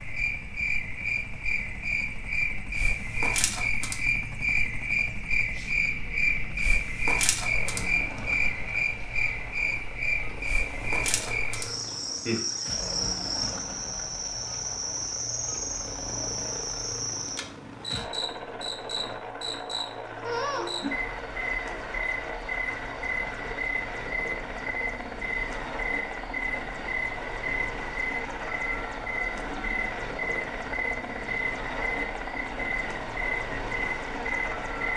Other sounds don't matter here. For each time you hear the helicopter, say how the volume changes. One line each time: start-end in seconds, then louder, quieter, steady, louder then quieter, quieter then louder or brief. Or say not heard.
0.0-34.9 louder.